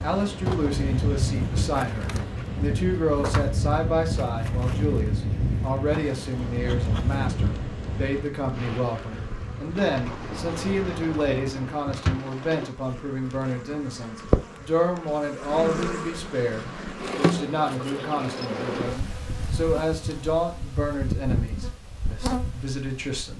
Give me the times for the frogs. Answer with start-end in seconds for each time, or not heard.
not heard.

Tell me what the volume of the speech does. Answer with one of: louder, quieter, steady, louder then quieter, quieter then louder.
steady.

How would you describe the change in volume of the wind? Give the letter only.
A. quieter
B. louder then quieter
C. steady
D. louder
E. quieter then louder
A.